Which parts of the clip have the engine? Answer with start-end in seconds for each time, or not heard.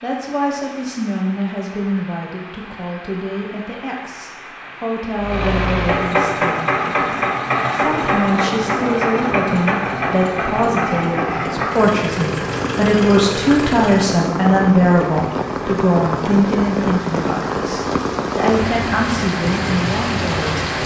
5.2-14.2.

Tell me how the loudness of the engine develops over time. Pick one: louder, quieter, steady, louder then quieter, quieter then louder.
quieter.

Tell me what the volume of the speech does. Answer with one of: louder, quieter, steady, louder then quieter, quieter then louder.
louder then quieter.